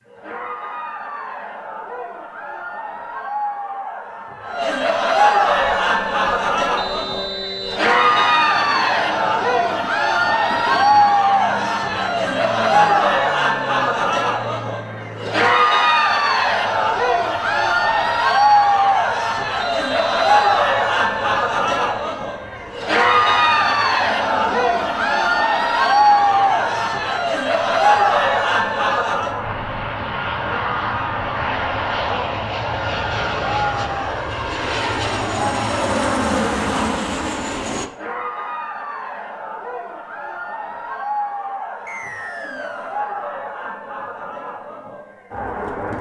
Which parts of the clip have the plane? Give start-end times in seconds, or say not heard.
5.5-37.9.